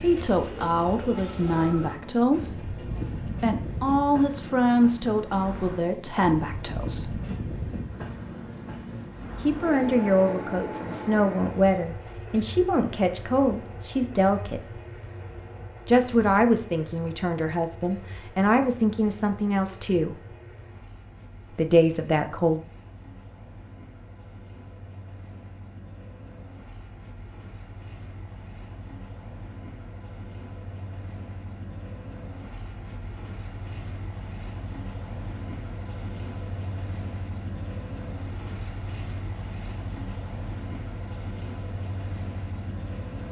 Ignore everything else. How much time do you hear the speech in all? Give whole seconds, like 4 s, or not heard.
18 s.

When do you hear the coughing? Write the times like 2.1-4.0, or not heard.
not heard.